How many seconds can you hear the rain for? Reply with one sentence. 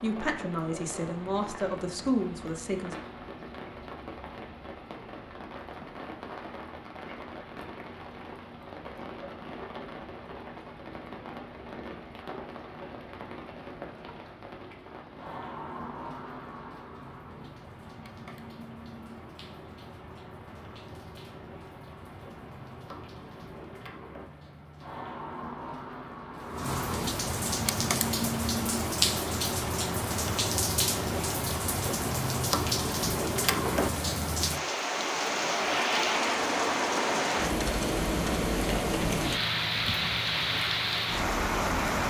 The rain can be heard for 42 seconds in total.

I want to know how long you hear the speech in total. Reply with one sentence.
The speech can be heard for 3 seconds in total.